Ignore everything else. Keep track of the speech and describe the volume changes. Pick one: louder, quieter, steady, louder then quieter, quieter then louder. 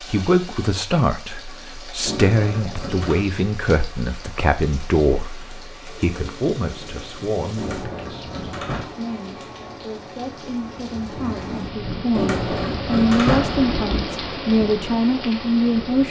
quieter then louder.